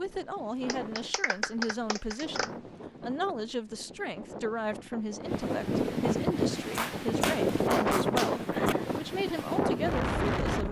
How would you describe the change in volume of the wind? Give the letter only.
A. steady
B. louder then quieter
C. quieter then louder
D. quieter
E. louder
E.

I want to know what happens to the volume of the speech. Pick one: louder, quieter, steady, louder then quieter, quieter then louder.
steady.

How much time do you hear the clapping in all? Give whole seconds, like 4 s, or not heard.
4 s.